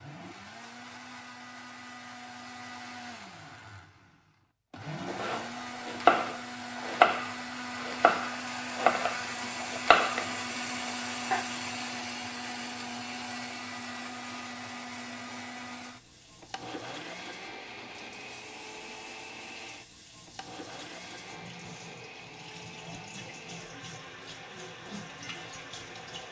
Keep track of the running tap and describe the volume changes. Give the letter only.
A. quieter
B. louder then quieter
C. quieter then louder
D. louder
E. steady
D.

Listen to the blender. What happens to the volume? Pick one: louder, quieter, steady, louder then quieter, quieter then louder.
louder then quieter.